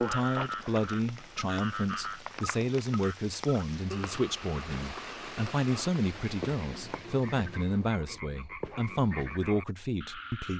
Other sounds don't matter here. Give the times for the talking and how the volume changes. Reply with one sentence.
The talking can be heard from 0.0 to 10.5 s, at a steady volume.